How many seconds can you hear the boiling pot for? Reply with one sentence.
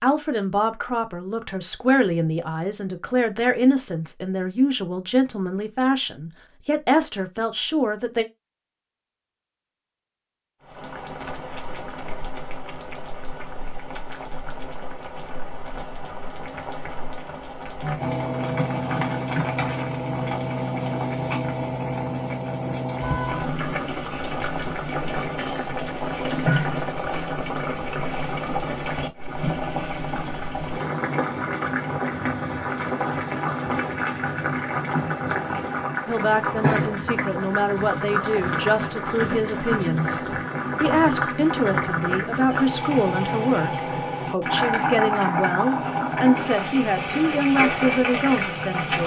You can hear the boiling pot for 38 seconds altogether.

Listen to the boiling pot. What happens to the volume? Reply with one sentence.
The loudness of the boiling pot goes up.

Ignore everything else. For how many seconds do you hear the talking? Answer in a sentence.
The talking can be heard for 21 seconds in total.